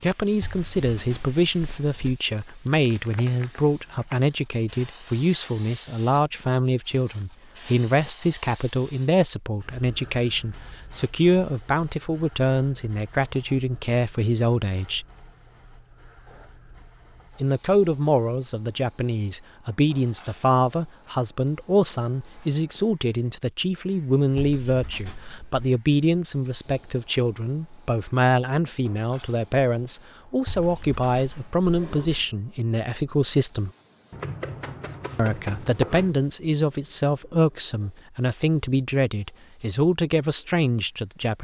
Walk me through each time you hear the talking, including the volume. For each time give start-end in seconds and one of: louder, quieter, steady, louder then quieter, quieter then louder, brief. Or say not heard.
0.0-15.1 steady
17.4-33.7 steady
35.1-41.3 steady.